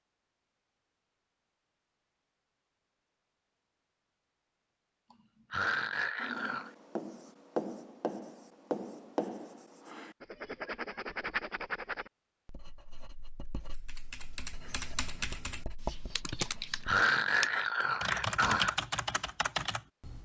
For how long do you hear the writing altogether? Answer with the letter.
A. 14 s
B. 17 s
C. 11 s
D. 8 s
C.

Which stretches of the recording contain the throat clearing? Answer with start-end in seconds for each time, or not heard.
5.1-6.7, 16.4-18.8.